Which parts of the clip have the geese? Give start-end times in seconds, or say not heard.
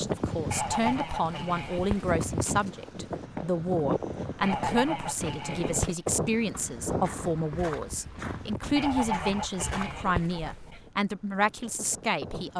0.5-2.1, 4.4-6.0, 8.8-10.9.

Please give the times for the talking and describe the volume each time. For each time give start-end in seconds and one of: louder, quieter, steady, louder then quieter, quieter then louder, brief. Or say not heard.
0.0-12.5 steady.